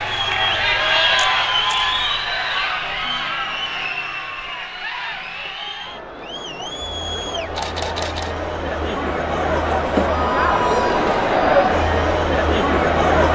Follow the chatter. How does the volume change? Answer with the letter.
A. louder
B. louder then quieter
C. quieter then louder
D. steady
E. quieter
C.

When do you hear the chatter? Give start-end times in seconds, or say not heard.
0.0-13.2.